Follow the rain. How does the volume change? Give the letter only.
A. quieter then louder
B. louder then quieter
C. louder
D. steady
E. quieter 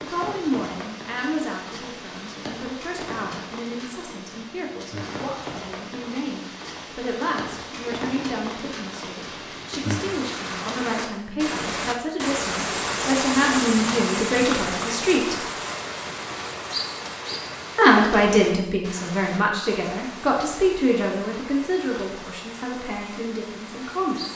B.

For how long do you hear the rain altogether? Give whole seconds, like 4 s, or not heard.
24 s.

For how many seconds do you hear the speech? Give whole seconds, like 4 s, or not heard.
22 s.